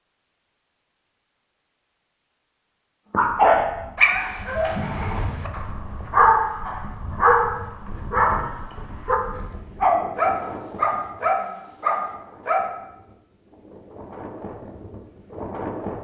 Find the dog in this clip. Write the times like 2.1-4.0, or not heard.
3.1-12.7.